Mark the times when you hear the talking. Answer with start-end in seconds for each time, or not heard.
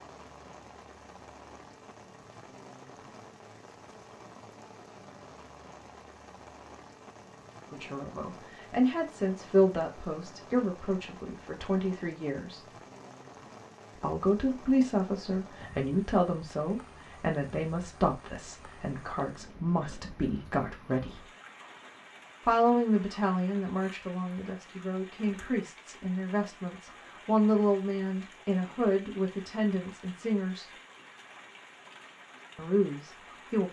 7.7-12.6, 13.9-21.2, 22.4-30.6, 32.5-33.6.